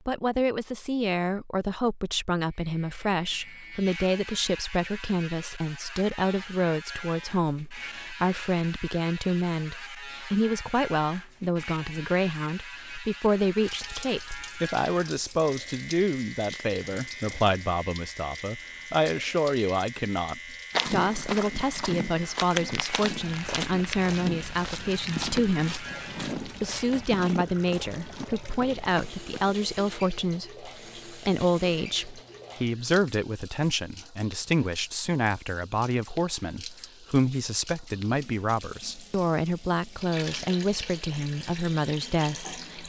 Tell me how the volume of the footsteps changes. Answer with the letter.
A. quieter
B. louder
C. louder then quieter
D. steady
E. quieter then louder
A.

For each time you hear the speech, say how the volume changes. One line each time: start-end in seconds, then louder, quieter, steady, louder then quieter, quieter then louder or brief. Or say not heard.
0.1-42.8 steady.